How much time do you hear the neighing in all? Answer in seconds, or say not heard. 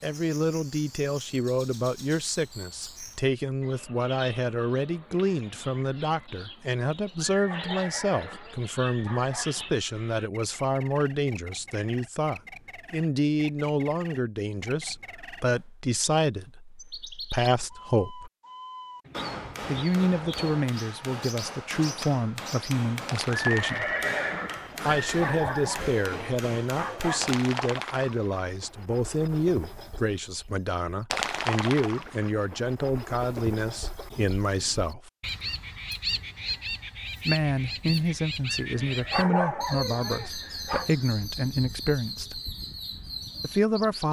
8 s.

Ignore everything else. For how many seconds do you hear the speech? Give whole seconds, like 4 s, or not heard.
39 s.